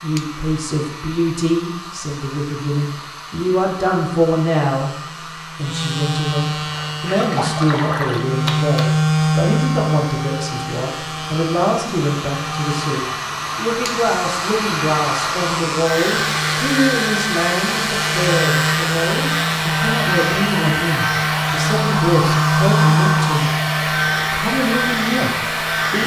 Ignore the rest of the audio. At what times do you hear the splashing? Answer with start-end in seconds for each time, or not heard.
6.7-8.9.